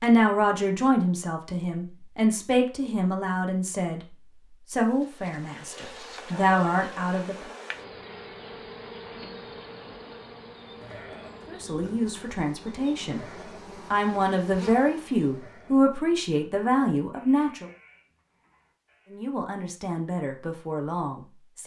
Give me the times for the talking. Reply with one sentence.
The talking can be heard from 0.0 to 7.5 s, from 11.4 to 13.2 s, from 13.9 to 17.7 s and from 19.1 to 21.6 s.